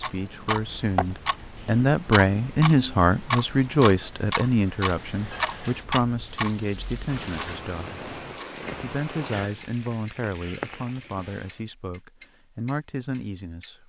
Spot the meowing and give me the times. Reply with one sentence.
You can't hear the meowing here.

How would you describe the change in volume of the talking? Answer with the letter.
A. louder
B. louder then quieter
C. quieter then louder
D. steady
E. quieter
E.